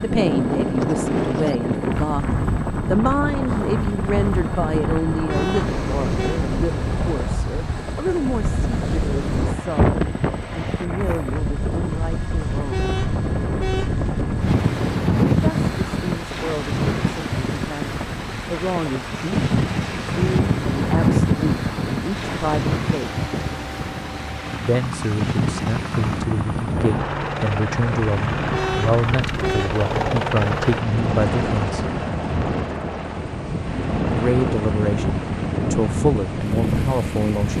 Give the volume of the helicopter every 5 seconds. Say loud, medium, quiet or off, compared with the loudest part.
medium, medium, medium, medium, medium, loud, loud, medium.